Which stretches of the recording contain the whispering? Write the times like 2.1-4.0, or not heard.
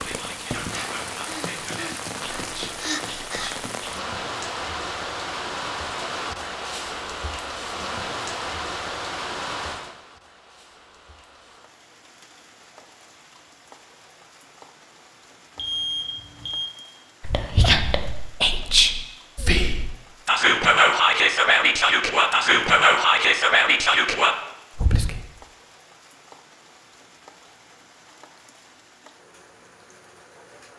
0.0-3.9, 17.2-25.1.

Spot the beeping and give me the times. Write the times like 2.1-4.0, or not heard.
15.6-16.7.